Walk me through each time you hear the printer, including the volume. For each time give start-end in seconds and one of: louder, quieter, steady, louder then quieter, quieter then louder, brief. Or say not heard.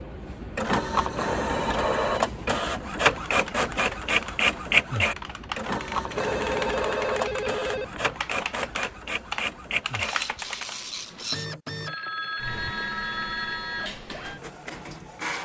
0.0-15.3 quieter.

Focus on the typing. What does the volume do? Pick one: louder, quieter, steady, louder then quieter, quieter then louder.
louder.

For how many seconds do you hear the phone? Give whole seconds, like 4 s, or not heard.
5 s.